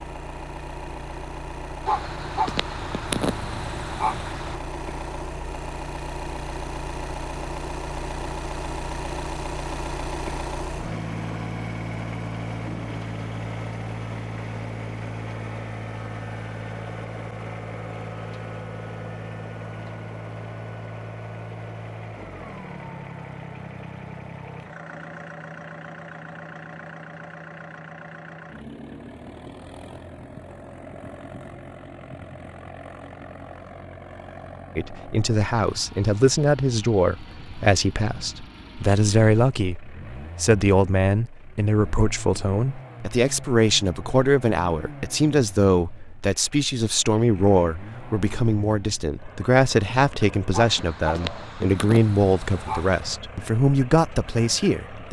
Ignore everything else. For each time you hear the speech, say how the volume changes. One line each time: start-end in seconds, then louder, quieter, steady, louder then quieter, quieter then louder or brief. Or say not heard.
34.8-55.0 steady.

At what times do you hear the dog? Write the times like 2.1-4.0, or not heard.
1.9-4.6, 50.5-53.2.